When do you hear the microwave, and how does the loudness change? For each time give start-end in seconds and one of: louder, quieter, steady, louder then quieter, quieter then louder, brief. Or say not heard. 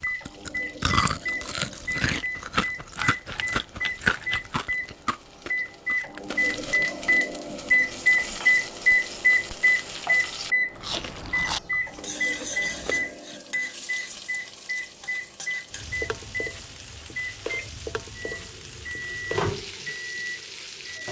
0.0-21.0 louder then quieter.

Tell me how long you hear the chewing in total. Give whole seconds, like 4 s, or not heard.
9 s.